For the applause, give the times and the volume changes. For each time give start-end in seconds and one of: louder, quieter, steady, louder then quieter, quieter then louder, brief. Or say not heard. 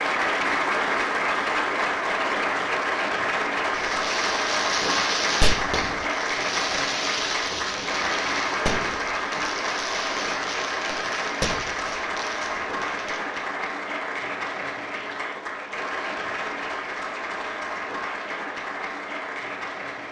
0.0-20.0 quieter.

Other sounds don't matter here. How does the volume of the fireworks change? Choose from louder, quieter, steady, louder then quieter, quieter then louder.
quieter.